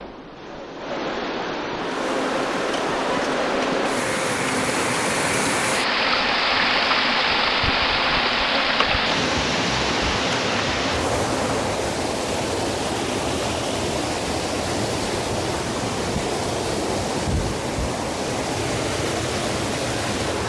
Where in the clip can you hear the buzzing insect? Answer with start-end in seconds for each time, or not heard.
1.8-11.7.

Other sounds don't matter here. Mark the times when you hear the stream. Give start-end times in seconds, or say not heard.
0.0-20.4.